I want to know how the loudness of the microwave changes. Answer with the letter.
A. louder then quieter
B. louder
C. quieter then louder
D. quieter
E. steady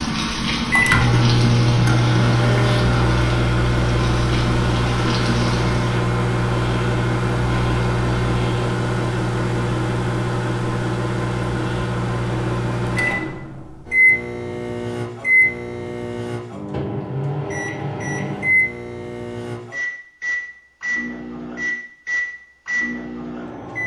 D.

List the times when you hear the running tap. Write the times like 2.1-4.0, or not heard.
0.0-6.0.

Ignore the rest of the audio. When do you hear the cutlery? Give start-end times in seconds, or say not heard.
not heard.